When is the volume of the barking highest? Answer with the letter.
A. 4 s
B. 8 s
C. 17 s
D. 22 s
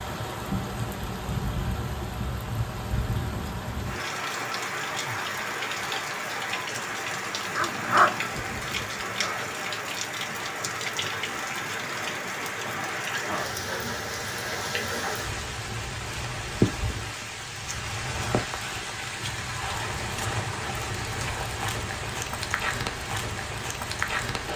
B.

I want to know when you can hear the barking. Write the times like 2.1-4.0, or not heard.
7.5-9.8.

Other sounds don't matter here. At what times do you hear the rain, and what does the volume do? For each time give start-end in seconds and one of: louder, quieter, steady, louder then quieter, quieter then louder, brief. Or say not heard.
0.0-24.5 steady.